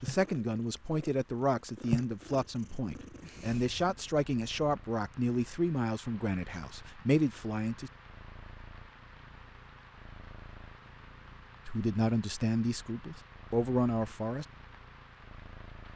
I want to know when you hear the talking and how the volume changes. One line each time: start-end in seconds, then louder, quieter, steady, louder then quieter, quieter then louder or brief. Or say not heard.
0.0-7.9 steady
11.7-14.4 brief.